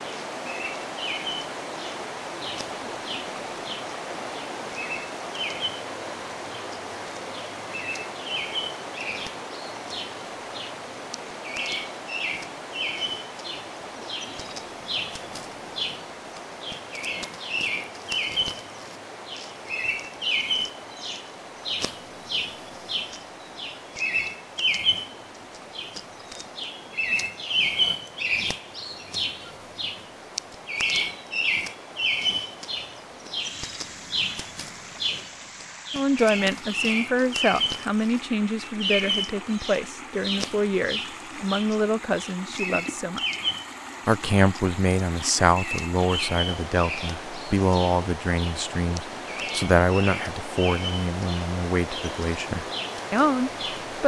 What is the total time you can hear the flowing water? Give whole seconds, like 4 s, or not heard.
54 s.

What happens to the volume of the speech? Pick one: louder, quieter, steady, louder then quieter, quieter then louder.
steady.